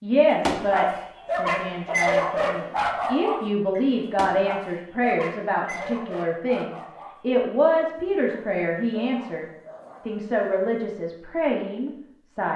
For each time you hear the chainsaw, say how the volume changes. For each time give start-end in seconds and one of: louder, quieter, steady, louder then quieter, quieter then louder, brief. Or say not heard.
not heard.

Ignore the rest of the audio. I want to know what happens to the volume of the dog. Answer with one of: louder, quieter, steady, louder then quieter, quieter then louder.
quieter.